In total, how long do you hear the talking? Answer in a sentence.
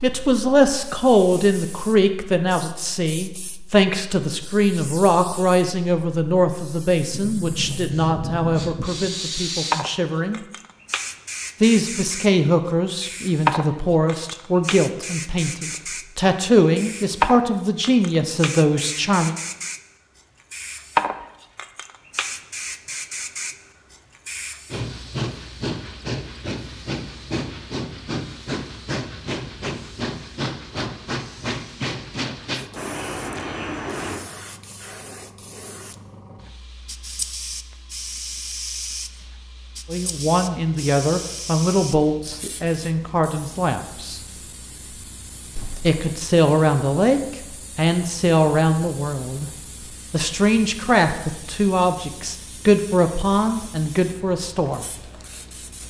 The talking can be heard for 31 seconds in total.